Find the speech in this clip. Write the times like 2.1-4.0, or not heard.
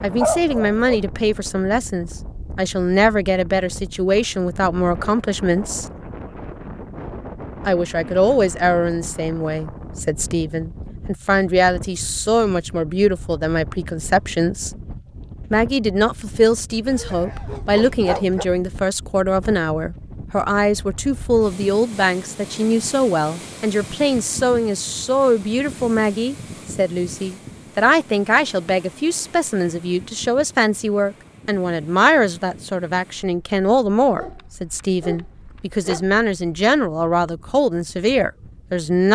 0.0-5.8, 7.7-14.7, 15.5-39.1.